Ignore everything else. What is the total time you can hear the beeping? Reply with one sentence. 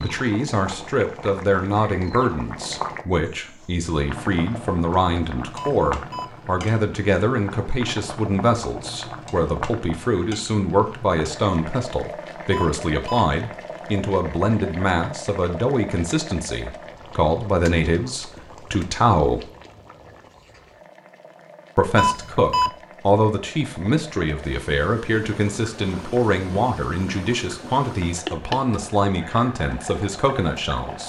The beeping can be heard for 2 seconds in total.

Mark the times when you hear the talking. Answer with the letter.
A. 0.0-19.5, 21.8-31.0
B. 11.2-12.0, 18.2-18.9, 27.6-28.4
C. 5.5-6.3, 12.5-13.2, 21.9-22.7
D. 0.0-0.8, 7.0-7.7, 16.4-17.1
A.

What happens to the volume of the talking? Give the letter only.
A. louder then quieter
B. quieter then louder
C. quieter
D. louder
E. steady
E.